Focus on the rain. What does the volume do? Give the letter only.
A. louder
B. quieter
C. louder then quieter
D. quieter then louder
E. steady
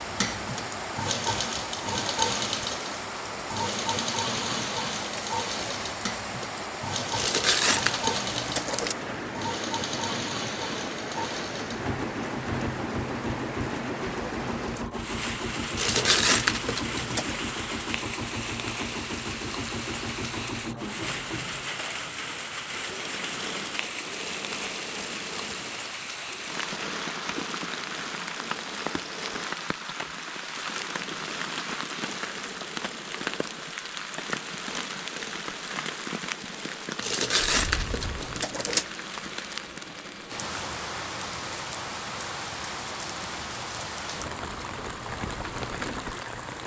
E.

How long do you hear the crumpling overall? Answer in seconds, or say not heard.
5 s.